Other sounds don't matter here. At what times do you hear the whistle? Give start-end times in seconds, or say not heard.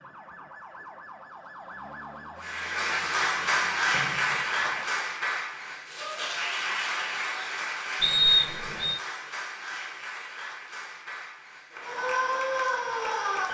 3.9-4.8, 8.0-8.9.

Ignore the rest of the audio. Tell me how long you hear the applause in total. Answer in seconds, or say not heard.
11 s.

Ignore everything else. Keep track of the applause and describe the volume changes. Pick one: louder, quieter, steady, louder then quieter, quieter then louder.
quieter.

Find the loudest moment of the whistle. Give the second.
8 s.